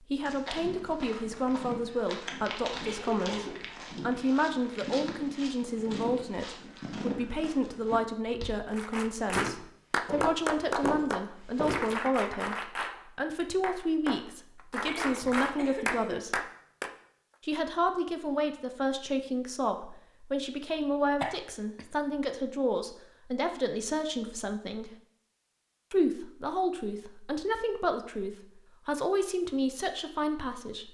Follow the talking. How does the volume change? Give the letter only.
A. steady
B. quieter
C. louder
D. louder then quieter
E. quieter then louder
A.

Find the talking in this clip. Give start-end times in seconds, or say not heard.
0.1-16.4, 17.4-24.9, 25.9-30.8.